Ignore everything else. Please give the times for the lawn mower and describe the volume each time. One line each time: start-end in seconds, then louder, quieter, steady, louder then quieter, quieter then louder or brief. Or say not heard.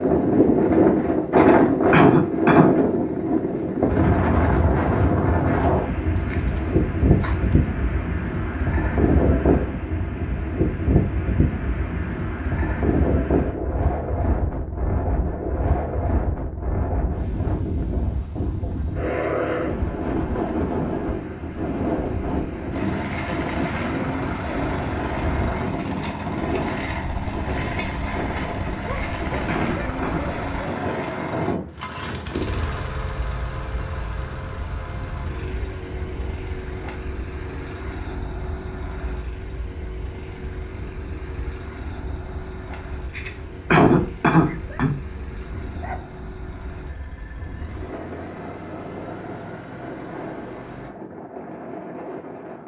22.7-50.9 quieter.